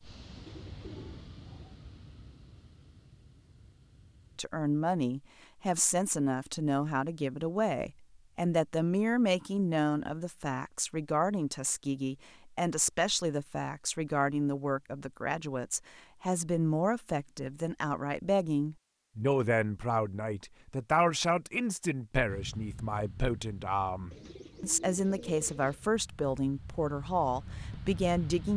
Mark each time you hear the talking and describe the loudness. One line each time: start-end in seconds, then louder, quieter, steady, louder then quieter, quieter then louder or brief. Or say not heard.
4.3-28.5 steady.